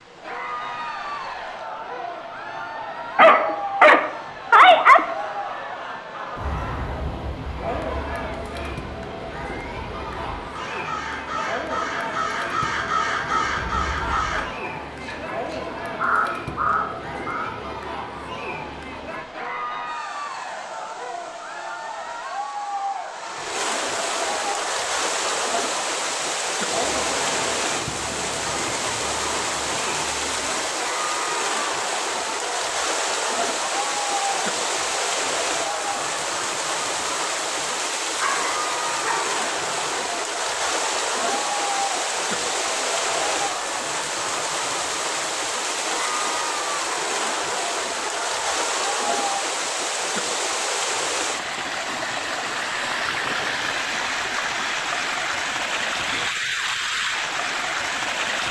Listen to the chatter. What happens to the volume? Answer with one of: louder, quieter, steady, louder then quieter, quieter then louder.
steady.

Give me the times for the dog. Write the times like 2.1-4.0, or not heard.
3.1-5.0, 38.2-40.0.